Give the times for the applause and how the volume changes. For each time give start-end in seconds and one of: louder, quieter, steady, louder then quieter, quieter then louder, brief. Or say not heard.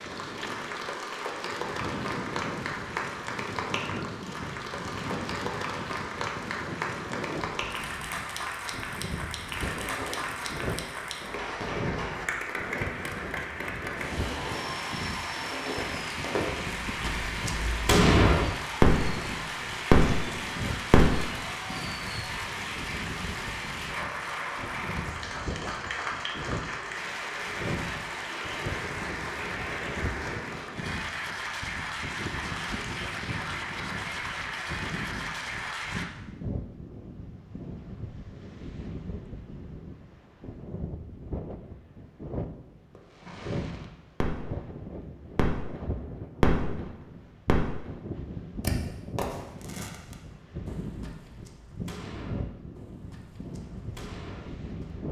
0.0-36.0 steady.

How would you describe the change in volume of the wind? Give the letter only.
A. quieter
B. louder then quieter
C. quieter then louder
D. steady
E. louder
D.